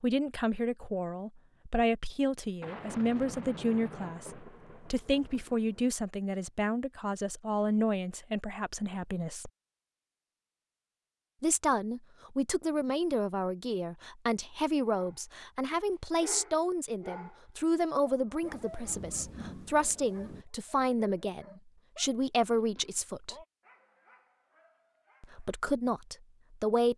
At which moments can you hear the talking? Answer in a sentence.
You can hear the talking from 0.0 to 9.5 s, from 11.4 to 23.4 s and from 25.2 to 26.9 s.